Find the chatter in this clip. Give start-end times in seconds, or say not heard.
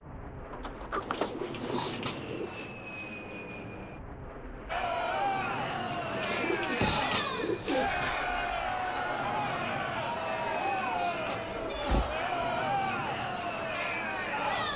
4.7-14.7.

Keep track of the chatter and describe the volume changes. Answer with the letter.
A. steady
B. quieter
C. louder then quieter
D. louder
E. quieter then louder
A.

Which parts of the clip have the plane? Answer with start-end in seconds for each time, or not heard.
0.0-14.7.